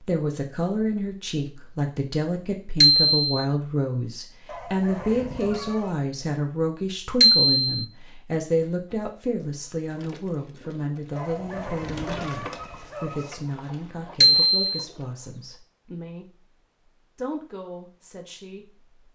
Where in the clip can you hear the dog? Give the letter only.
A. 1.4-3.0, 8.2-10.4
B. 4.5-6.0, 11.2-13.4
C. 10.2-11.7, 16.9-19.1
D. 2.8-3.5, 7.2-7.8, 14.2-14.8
B.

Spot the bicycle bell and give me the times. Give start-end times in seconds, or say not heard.
2.8-3.5, 7.2-7.8, 14.2-14.8.